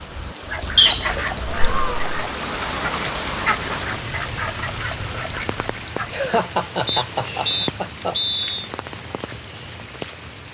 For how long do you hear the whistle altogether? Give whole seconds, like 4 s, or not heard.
2 s.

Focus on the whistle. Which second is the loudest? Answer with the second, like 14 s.
1 s.